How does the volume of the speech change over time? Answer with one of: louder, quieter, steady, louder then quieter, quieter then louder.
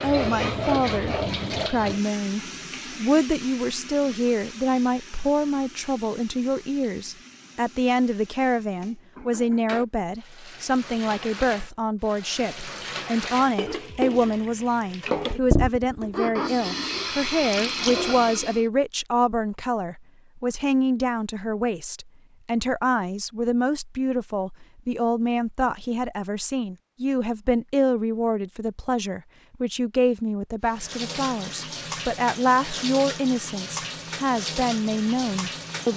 steady.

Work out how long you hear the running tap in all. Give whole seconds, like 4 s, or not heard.
24 s.